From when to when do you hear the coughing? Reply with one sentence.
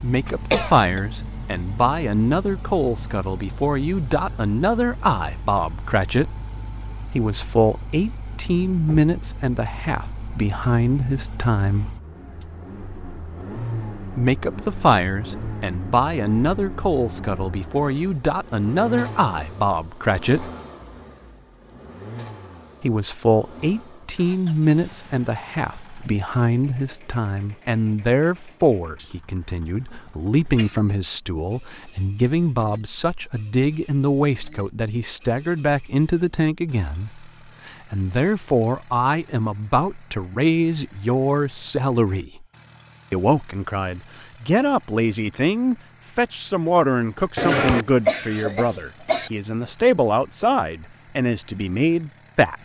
The coughing can be heard from 0.2 to 1.0 s, from 28.9 to 30.8 s and from 47.4 to 49.3 s.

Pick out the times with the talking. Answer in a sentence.
The talking can be heard from 0.0 to 6.3 s, from 7.1 to 11.9 s, from 14.2 to 20.5 s, from 22.8 to 42.5 s and from 43.1 to 52.6 s.